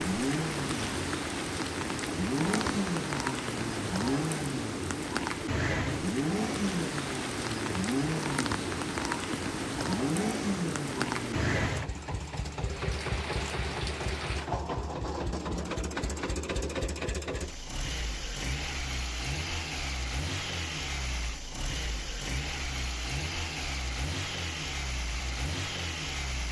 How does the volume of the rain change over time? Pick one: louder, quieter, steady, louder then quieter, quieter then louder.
steady.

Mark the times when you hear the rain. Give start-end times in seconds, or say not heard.
0.0-14.4.